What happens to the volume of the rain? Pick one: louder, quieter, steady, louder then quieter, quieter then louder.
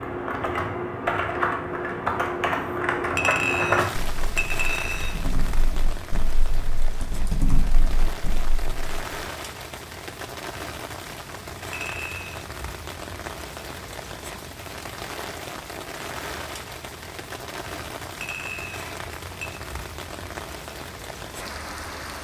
steady.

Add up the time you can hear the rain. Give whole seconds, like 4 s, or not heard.
18 s.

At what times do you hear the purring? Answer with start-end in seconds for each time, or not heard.
not heard.